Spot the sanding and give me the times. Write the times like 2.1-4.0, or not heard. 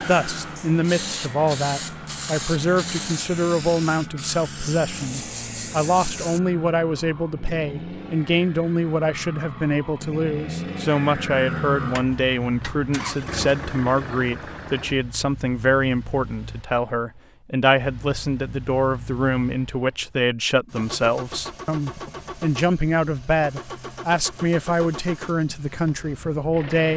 not heard.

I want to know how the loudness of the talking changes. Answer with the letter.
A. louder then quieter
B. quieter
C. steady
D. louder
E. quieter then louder
C.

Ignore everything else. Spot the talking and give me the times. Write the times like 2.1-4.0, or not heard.
0.1-26.9.